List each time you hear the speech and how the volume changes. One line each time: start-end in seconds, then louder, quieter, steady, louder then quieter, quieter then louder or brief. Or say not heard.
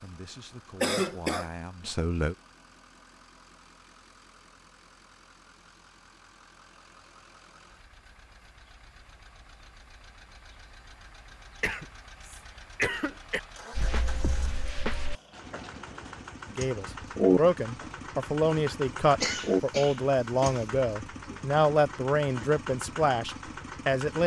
0.0-2.4 brief
16.5-24.2 steady.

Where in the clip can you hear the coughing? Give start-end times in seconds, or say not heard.
0.8-1.5, 11.6-13.4, 19.2-20.6.